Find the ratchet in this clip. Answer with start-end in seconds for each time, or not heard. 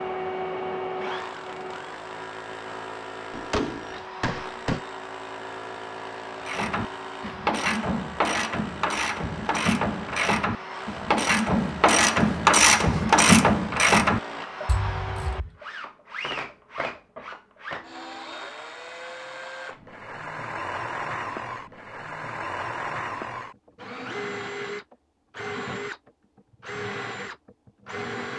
6.4-15.5.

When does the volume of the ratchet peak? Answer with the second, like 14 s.
13 s.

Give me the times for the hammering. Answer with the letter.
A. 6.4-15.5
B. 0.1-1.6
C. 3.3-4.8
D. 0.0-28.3
C.